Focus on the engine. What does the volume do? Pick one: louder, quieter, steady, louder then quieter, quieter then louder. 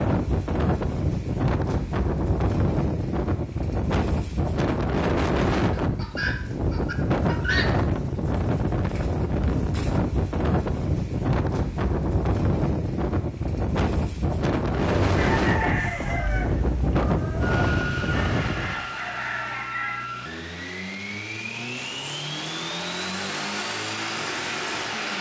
louder.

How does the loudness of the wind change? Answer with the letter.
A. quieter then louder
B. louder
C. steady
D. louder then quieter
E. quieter
C.